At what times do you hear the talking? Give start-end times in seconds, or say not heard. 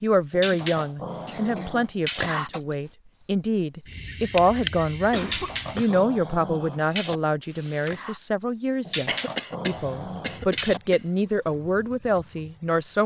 0.0-13.0.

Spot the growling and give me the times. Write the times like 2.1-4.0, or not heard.
0.3-2.3, 5.2-7.2, 8.8-10.8.